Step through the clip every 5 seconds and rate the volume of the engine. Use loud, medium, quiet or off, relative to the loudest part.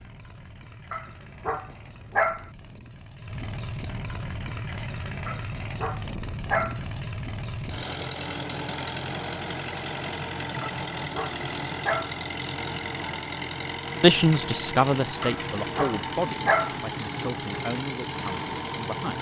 medium, loud, loud, loud.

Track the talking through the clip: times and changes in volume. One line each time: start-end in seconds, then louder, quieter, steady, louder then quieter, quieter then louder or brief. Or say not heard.
14.0-19.1 quieter.